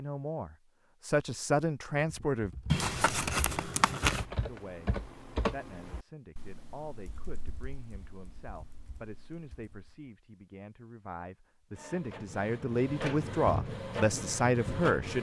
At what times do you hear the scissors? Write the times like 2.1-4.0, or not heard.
2.7-4.2.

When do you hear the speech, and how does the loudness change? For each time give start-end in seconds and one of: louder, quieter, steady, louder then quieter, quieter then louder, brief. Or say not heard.
0.0-2.5 brief
4.4-15.1 louder.